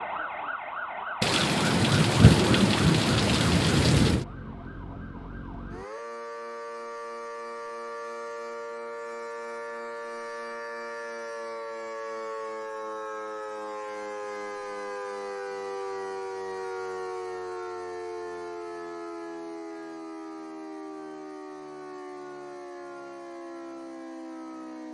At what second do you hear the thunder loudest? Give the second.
2 s.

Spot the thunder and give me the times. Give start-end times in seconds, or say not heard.
1.2-4.2.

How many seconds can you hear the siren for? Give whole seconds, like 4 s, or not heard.
25 s.